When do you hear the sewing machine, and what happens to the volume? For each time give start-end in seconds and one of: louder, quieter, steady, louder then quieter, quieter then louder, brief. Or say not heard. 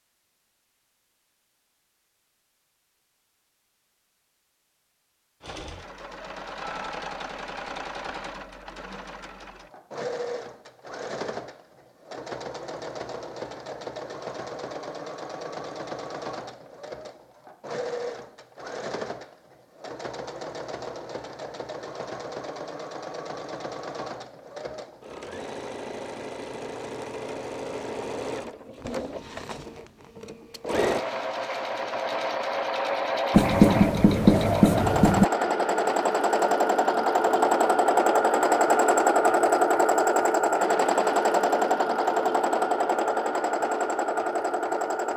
5.4-45.1 louder.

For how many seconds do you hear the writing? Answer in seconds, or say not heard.
2 s.